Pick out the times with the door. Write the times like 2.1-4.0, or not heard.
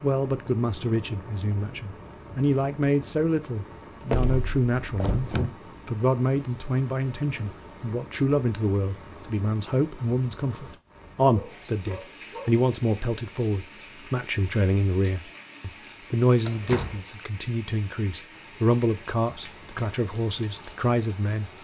4.1-5.5, 16.4-17.0.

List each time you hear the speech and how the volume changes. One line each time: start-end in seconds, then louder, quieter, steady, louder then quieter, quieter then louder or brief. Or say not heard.
0.0-21.5 steady.